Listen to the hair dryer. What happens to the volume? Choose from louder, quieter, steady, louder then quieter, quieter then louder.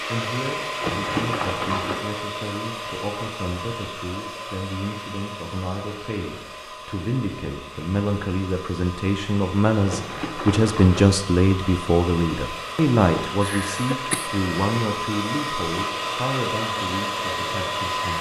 quieter then louder.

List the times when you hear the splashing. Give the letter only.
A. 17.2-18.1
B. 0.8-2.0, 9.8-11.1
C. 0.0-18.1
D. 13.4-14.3
B.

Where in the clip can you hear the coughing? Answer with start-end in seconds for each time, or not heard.
13.4-14.3.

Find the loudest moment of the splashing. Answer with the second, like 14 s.
1 s.